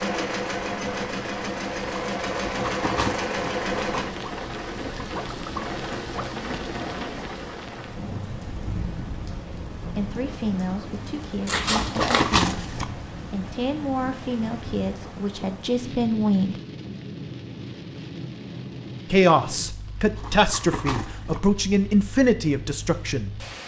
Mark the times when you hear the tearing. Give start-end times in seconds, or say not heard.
2.5-3.5, 11.6-12.8, 20.1-21.4.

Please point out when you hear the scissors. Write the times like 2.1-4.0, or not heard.
11.4-12.3.